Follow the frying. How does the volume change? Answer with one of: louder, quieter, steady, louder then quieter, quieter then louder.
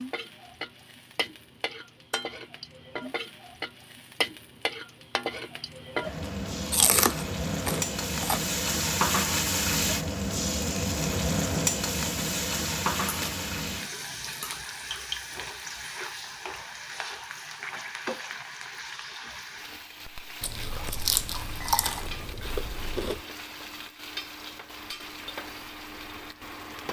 louder then quieter.